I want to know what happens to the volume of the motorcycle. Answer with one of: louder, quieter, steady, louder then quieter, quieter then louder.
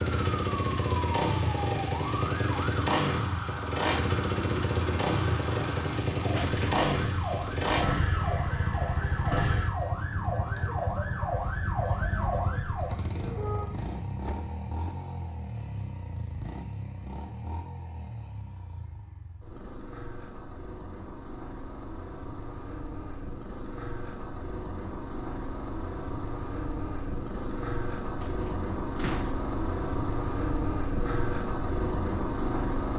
quieter then louder.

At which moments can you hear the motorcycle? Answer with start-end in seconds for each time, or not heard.
0.0-32.9.